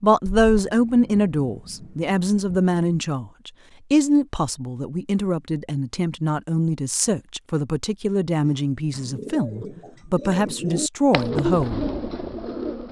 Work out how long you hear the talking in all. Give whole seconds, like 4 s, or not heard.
12 s.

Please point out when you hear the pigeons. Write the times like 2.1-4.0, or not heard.
8.4-12.8.